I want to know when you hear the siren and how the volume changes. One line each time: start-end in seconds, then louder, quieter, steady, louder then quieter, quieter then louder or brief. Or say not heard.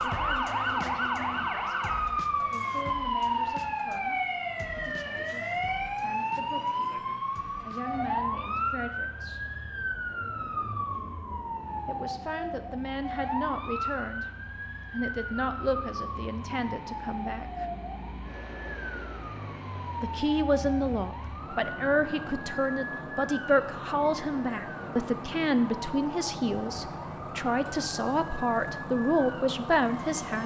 0.0-30.4 quieter.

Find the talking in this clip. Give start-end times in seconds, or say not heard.
0.0-9.4, 11.8-14.2, 14.9-17.6, 20.0-30.4.